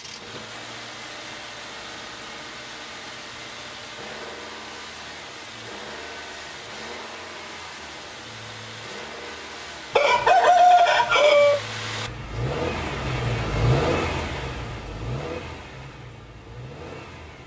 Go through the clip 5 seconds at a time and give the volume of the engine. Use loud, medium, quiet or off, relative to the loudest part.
medium, medium, loud, medium.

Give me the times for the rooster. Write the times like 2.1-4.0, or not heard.
9.9-11.6.